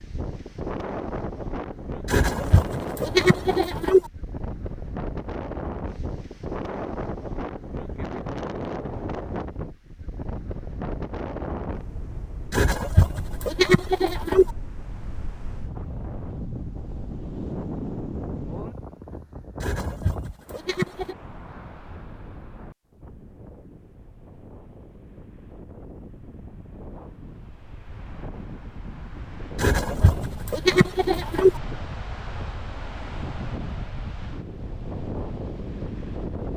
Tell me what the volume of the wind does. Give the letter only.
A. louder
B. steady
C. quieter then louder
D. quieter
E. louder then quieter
C.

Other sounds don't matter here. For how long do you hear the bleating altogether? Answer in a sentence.
The bleating can be heard for 8 seconds in total.